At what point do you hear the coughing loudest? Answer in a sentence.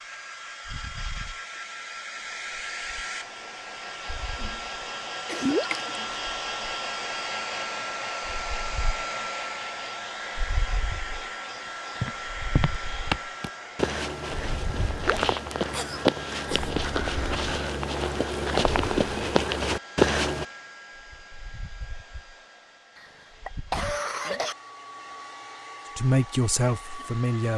The volume of the coughing peaks at 24 seconds.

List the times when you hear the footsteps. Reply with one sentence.
The footsteps can be heard from 12.0 to 20.4 s.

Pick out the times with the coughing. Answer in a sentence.
You can hear the coughing from 4.3 to 6.2 s, from 15.7 to 16.8 s and from 22.9 to 24.6 s.